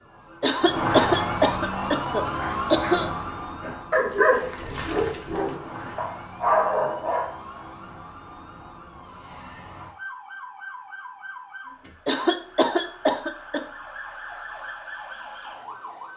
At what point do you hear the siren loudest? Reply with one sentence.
The volume of the siren peaks at 1 second.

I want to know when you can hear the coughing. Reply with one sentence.
The coughing can be heard from 0.4 to 3.1 s and from 12.1 to 13.6 s.